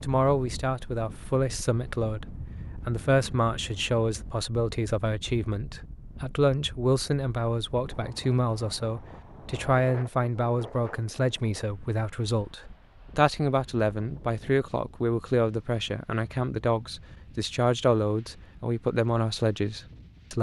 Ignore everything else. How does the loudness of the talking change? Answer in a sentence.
The loudness of the talking stays about the same.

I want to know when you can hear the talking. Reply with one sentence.
The talking can be heard from 0.0 to 20.3 s.